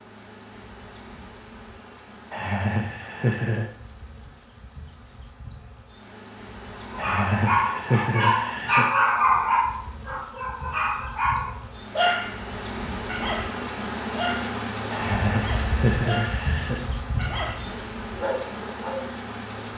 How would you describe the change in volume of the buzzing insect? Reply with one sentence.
The volume of the buzzing insect goes up.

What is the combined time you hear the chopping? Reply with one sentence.
You can't hear the chopping here.